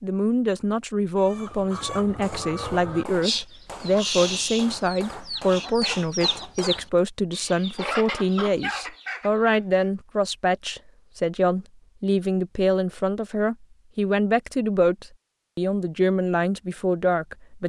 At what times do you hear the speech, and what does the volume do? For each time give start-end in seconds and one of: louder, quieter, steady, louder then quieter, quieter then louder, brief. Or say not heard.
0.0-17.6 steady.